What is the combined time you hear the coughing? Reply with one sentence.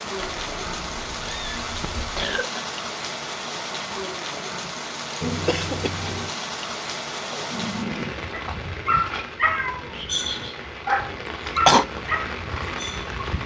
You can hear the coughing for 2 seconds altogether.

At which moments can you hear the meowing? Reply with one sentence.
The meowing can be heard from 0.1 to 2.4 s, from 5.2 to 6.3 s and from 9.4 to 10.6 s.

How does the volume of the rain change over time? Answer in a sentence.
The volume of the rain stays about the same.